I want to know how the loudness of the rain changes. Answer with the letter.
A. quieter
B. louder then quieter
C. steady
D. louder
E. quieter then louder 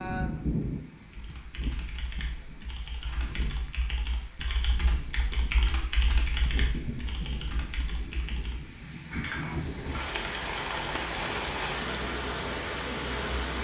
E.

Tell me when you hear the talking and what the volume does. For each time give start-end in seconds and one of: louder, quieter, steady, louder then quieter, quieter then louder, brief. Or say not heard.
not heard.